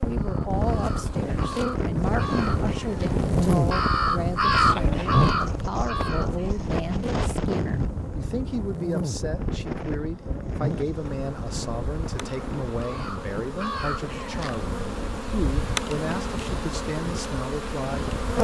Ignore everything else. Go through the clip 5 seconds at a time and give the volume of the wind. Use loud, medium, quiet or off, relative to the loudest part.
loud, loud, medium, medium.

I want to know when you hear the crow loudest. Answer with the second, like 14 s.
5 s.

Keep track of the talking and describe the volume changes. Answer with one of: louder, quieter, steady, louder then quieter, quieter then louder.
steady.